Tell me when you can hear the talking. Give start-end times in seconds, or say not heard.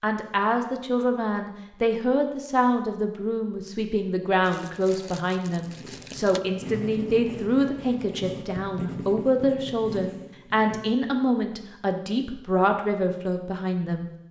0.0-14.1.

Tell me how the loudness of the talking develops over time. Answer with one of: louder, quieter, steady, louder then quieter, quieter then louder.
steady.